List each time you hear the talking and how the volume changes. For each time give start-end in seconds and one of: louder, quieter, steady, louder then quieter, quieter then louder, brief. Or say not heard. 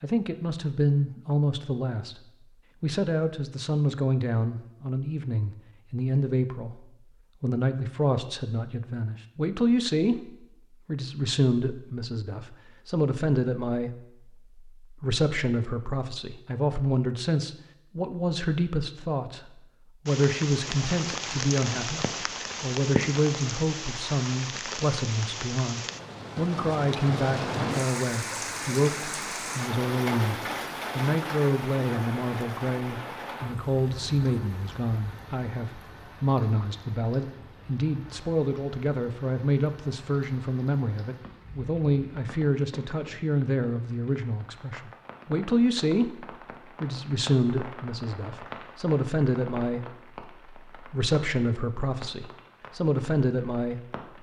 0.0-2.2 brief
2.8-54.1 steady.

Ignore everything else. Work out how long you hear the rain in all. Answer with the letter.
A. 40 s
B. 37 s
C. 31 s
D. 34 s
D.